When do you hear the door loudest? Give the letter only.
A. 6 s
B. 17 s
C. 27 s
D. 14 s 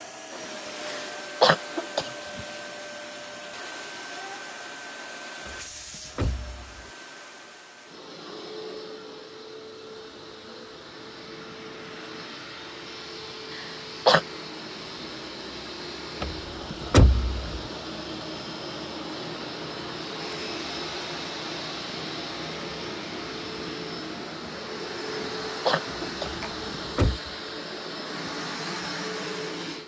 B.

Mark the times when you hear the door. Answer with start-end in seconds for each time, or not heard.
5.5-6.8, 16.2-17.6, 26.2-27.2.